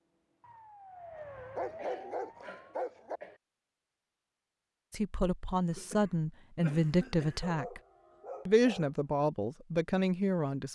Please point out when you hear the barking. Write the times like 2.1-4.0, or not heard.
1.6-3.2, 7.4-8.9.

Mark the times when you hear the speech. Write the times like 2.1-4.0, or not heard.
4.9-7.8, 8.4-10.6.